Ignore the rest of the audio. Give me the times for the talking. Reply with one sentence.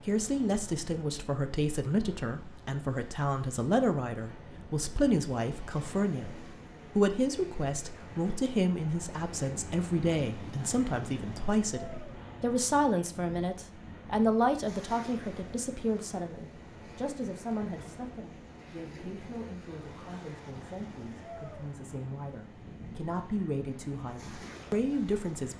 The talking can be heard from 0.0 to 25.5 s.